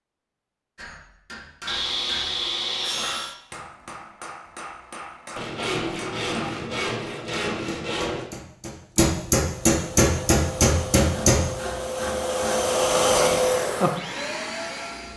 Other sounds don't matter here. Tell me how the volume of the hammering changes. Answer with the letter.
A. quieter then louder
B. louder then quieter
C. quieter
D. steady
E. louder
E.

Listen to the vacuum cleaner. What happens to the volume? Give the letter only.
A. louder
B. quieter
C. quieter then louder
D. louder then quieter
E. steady
D.